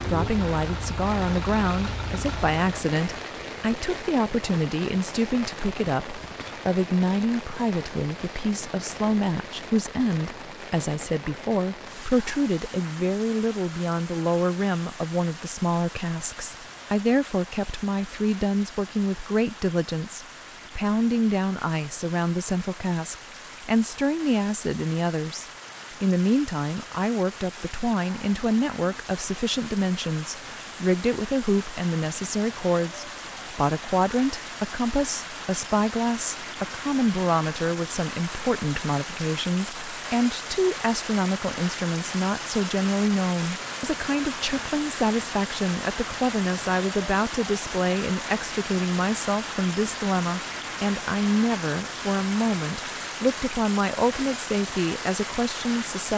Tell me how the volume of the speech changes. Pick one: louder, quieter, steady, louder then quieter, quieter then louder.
steady.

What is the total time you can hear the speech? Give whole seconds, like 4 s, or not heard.
56 s.